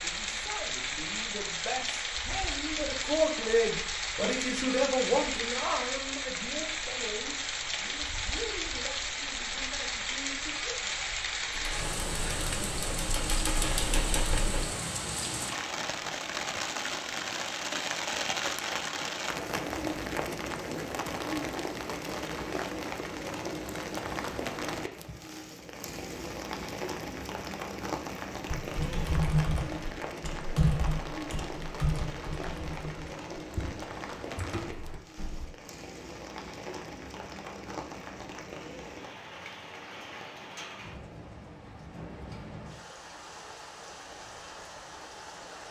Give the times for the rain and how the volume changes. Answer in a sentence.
You can hear the rain from 0.0 to 45.6 s, getting quieter.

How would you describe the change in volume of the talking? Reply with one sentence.
The loudness of the talking goes up, then down.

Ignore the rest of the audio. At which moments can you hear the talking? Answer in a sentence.
You can hear the talking from 0.0 to 11.0 s.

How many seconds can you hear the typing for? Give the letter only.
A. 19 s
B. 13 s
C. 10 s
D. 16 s
C.